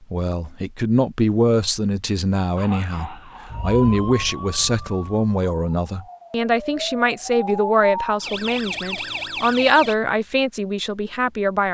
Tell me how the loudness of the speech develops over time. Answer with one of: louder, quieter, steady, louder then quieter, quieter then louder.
steady.